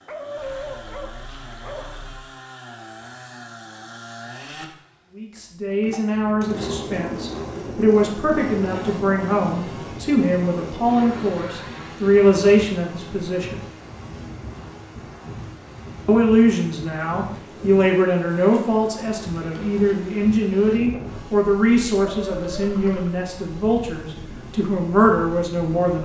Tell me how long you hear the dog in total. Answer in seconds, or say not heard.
3 s.